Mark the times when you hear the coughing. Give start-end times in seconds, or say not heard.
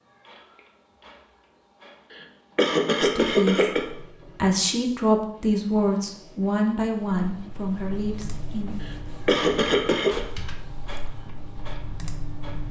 2.1-3.9, 8.8-10.2.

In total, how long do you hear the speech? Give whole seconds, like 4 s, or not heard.
6 s.